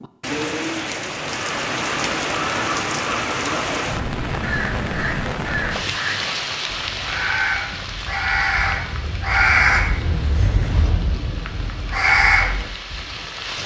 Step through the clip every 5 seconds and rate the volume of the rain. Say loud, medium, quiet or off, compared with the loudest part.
loud, loud, medium.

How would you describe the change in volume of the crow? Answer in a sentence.
The loudness of the crow goes up.